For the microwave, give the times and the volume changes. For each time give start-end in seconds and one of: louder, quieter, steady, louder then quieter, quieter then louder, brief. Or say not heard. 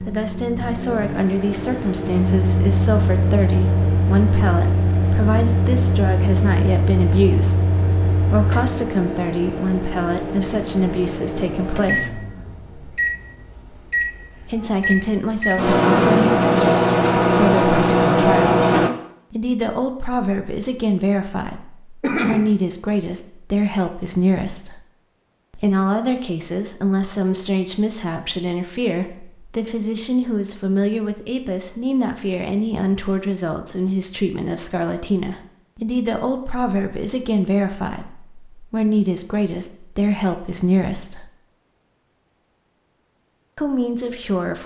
0.0-18.9 louder.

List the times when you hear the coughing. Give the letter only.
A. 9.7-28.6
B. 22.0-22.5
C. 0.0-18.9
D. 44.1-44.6
B.